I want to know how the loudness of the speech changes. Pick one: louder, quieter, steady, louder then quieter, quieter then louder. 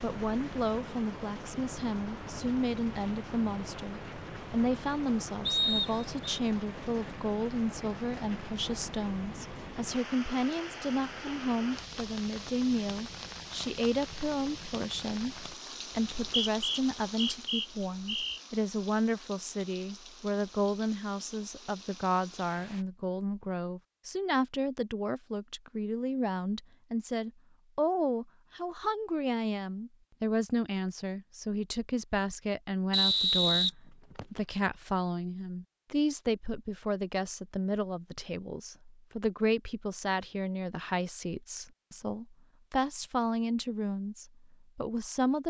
steady.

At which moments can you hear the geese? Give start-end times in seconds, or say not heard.
not heard.